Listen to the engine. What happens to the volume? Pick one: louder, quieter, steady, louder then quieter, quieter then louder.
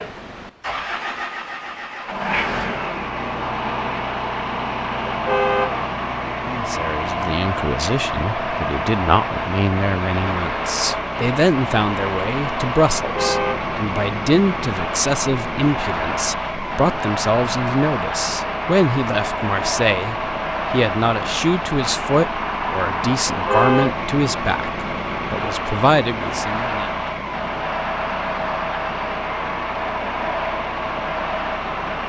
steady.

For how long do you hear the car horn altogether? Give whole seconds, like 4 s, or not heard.
2 s.